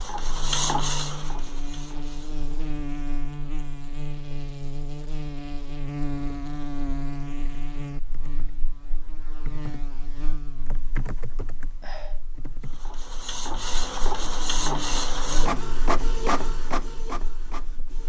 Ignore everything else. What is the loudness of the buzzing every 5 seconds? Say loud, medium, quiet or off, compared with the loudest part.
loud, loud, medium, medium.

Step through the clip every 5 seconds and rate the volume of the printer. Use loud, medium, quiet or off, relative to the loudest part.
loud, off, loud, loud.